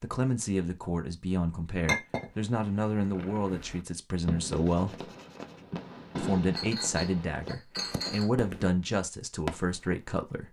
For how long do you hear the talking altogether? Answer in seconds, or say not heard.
9 s.